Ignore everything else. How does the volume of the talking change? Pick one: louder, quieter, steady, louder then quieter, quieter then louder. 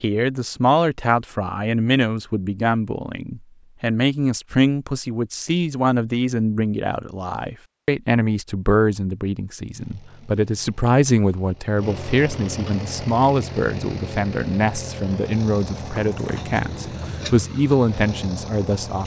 steady.